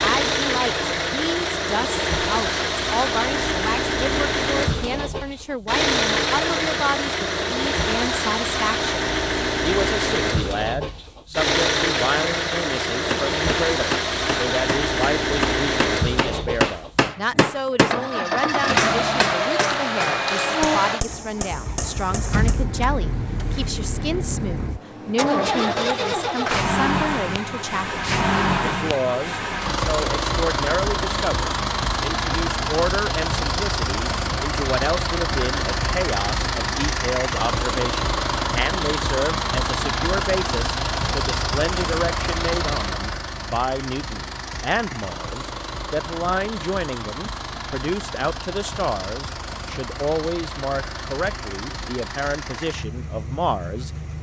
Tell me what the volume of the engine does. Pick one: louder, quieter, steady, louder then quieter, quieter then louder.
quieter.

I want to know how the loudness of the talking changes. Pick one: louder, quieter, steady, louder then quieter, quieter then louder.
steady.